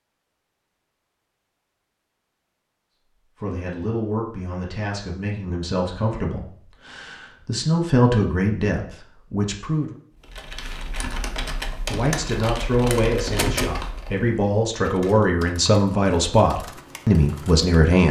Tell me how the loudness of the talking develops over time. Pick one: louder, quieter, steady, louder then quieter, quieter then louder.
louder.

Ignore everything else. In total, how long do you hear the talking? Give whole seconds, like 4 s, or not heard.
13 s.